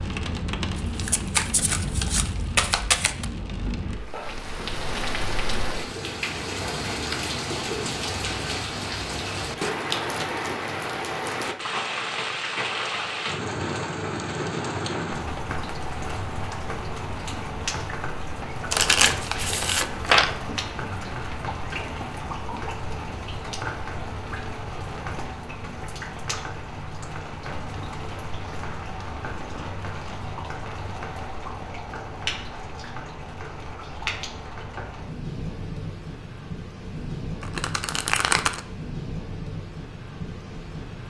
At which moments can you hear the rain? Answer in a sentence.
You can hear the rain from 0.0 to 41.0 s.